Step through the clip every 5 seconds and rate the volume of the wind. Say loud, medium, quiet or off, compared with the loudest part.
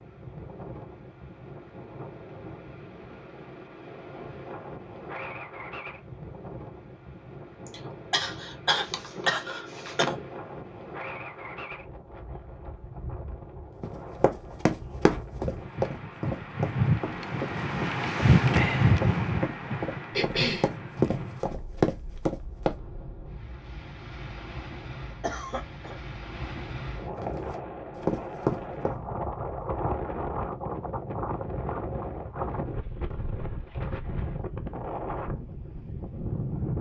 quiet, quiet, quiet, loud, quiet, medium, medium, medium.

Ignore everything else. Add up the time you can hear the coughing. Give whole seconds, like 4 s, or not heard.
4 s.